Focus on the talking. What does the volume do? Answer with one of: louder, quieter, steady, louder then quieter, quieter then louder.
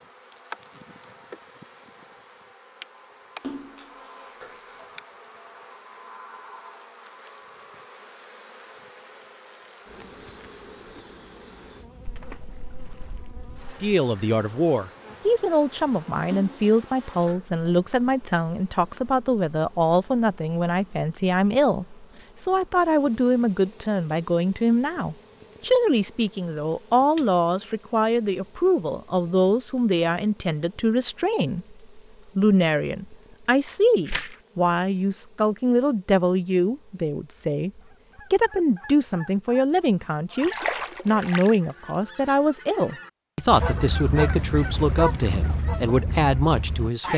steady.